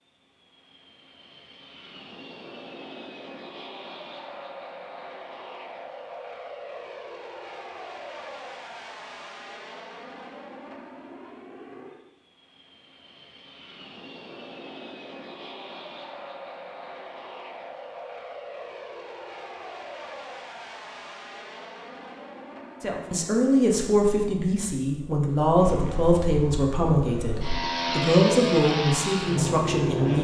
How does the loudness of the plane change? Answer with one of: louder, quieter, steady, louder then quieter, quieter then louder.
louder.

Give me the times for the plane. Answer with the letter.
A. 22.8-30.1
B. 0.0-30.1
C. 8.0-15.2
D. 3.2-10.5
B.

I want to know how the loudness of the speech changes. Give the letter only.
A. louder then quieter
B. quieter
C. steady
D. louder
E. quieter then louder
C.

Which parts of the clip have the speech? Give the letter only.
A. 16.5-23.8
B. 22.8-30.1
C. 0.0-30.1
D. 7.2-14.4
B.